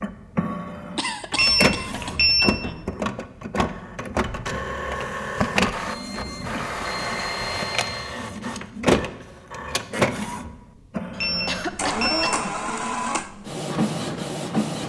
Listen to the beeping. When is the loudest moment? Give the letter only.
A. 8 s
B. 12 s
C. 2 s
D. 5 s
C.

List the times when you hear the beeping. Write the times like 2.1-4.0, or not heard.
1.4-2.8, 5.8-8.2, 11.2-12.4.